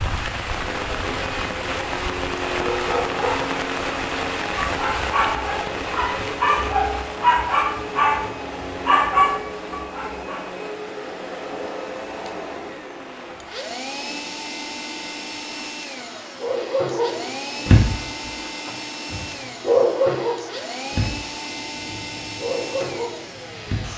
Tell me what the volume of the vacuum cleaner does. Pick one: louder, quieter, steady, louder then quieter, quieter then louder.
steady.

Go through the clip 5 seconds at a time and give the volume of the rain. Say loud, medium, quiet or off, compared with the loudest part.
loud, medium, quiet, quiet, quiet.